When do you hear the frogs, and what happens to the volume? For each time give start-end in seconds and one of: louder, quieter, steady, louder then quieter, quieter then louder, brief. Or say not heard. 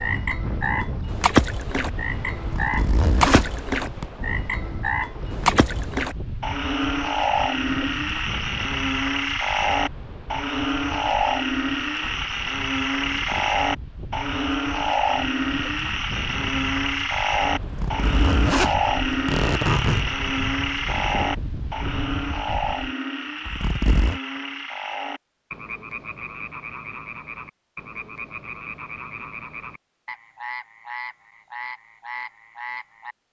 0.0-33.1 quieter.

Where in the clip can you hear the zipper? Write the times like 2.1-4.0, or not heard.
2.4-4.0, 17.6-20.1, 23.4-24.2.